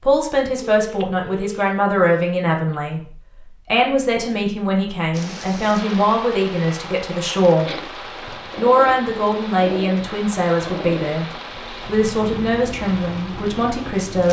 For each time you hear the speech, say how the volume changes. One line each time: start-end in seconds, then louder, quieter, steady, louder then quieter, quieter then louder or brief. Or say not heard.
0.0-7.8 steady
8.6-11.2 brief
11.8-14.2 brief.